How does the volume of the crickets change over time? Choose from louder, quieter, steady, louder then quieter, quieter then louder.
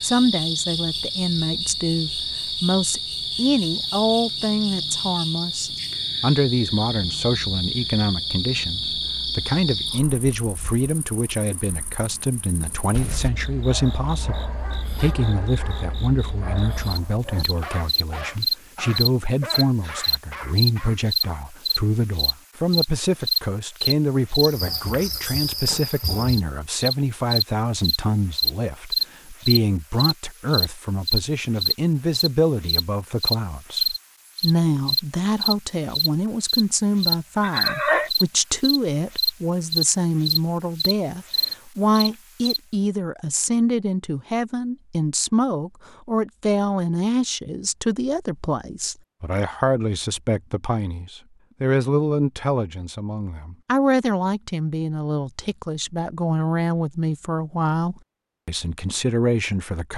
quieter then louder.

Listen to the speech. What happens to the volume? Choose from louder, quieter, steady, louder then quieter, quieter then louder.
steady.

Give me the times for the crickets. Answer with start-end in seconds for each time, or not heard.
0.0-42.6.